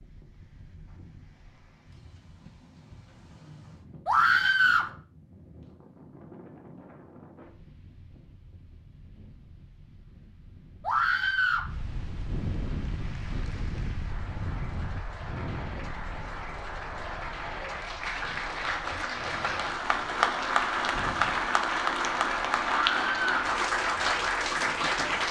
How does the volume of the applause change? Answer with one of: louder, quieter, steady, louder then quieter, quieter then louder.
louder.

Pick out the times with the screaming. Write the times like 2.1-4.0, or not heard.
4.0-4.9, 10.8-11.7, 22.9-23.4.